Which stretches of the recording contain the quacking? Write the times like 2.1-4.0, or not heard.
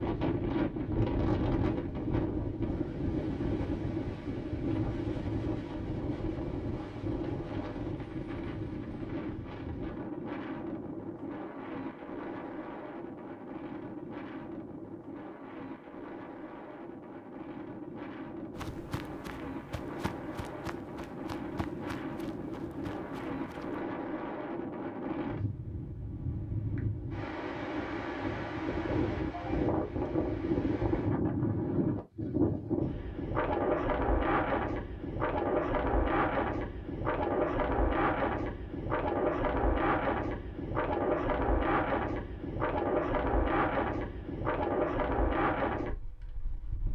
not heard.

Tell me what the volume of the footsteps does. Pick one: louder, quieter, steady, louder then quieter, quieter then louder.
steady.